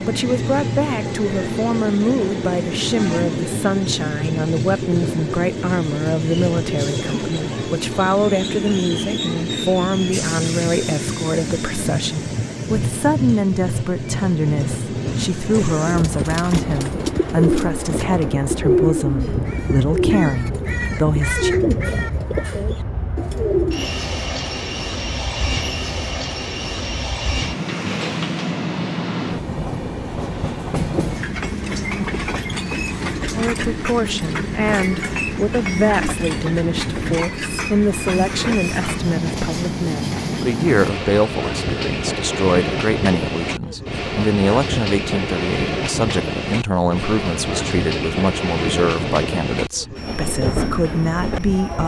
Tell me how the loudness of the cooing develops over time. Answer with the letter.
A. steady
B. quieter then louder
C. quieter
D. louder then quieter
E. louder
A.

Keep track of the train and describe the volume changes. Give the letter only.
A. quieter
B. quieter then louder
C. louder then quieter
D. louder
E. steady
E.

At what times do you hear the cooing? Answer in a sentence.
You can hear the cooing from 15.8 to 24.0 s.